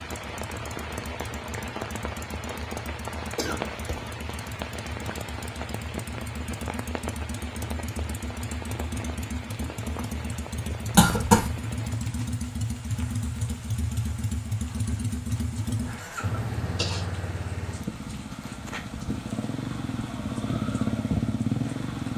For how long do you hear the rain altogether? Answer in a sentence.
You can hear the rain for 22 seconds altogether.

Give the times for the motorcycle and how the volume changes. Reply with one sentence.
You can hear the motorcycle from 0.0 to 22.1 s, getting louder.